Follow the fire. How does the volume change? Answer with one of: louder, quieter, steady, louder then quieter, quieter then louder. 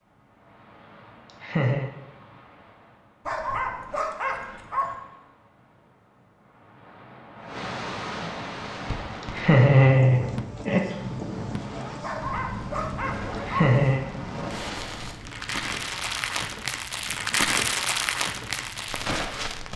louder.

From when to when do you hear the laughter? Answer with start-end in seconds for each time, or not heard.
1.2-1.9, 9.2-10.8, 13.3-14.1.